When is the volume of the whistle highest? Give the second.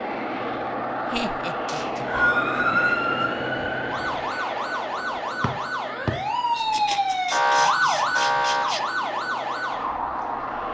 3 s.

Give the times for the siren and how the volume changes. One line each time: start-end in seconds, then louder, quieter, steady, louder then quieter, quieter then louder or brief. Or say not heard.
2.1-10.6 louder then quieter.